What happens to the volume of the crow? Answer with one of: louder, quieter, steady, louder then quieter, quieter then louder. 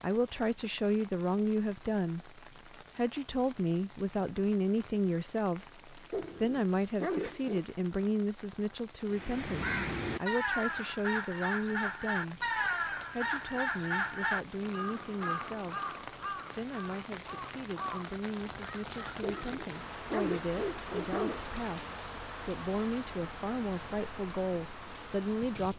quieter.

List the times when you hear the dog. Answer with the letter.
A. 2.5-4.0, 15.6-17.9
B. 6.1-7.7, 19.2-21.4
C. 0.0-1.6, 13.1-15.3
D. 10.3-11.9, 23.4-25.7
B.